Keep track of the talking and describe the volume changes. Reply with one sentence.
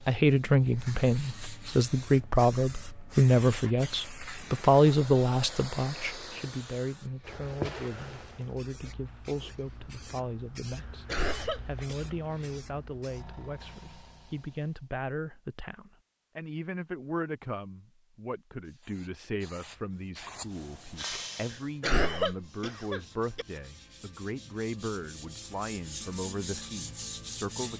The volume of the talking goes down.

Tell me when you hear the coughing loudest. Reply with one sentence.
The loudest moment of the coughing is at 22 seconds.